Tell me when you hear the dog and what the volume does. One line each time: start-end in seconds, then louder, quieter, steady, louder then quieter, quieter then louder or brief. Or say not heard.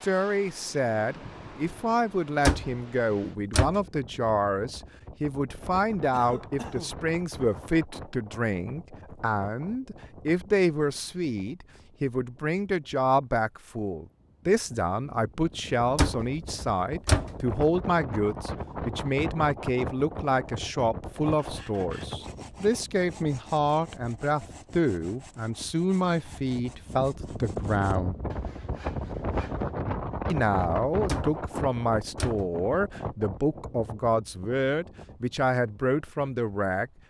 not heard.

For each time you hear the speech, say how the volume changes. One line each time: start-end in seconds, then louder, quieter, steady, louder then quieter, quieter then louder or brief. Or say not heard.
0.0-28.1 steady
30.2-36.9 steady.